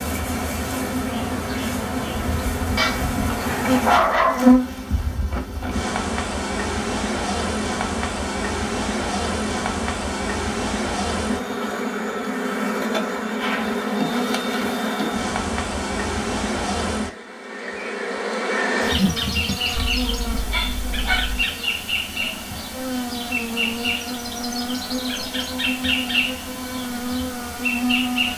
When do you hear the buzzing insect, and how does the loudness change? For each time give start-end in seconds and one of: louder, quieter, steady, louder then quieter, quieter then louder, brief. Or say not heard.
0.0-28.3 steady.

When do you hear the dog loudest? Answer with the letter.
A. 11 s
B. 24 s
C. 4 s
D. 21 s
C.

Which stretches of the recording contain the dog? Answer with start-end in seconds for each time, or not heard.
2.8-4.5, 19.7-21.4.